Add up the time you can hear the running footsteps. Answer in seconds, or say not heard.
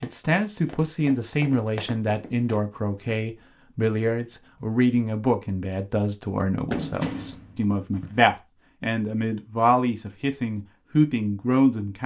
4 s.